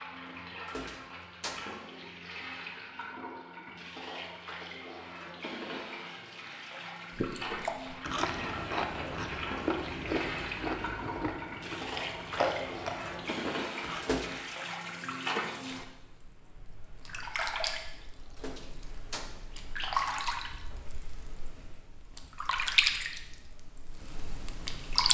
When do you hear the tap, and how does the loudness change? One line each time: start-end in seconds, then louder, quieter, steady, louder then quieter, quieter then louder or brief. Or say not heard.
0.0-25.1 louder.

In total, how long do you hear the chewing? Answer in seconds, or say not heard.
7 s.